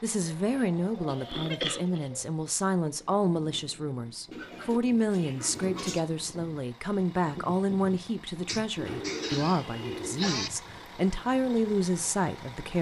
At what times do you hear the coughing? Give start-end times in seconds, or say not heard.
0.5-2.1, 8.4-10.5.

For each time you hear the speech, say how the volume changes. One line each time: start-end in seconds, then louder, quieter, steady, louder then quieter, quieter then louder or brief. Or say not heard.
0.0-12.7 steady.